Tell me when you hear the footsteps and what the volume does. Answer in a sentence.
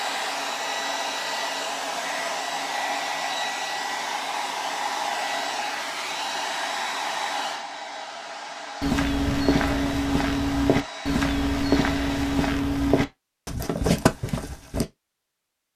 You can hear the footsteps from 8.8 to 14.8 s, at a steady volume.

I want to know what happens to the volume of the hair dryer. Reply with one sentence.
The loudness of the hair dryer goes down.